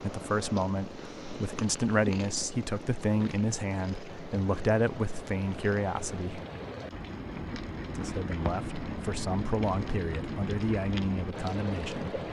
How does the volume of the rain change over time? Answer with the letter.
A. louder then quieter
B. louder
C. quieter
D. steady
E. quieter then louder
B.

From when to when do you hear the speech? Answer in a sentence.
You can hear the speech from 0.0 to 6.4 s and from 8.0 to 12.2 s.